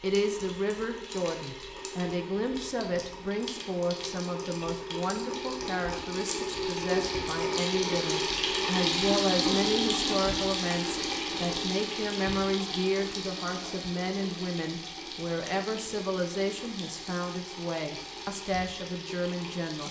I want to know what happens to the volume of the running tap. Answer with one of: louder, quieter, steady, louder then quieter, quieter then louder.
louder then quieter.